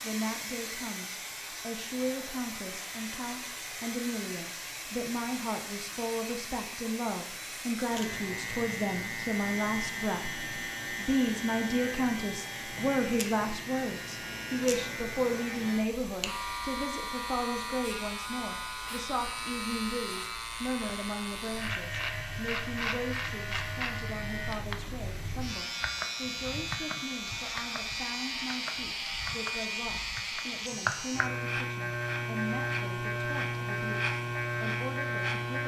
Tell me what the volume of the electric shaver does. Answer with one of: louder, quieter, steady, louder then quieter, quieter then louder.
louder.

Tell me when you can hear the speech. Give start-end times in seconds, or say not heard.
0.0-35.6.